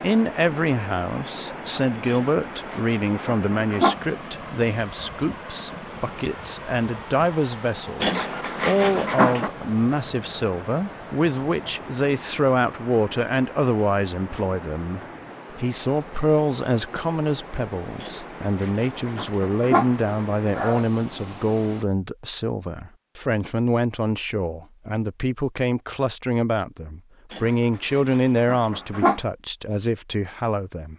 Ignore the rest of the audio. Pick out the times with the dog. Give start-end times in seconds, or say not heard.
2.1-4.0, 8.0-9.5, 18.0-20.9, 27.3-29.2.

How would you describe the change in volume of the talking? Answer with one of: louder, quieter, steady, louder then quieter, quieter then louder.
steady.